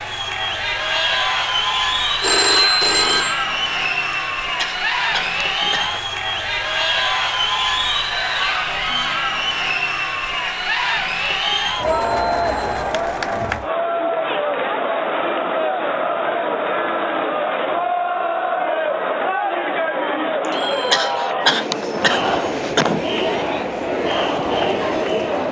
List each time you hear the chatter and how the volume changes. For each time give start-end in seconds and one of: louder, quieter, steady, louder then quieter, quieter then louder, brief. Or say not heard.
0.0-25.4 steady.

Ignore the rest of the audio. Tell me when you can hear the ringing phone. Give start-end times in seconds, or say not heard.
2.2-3.4, 11.8-12.8, 20.6-21.1.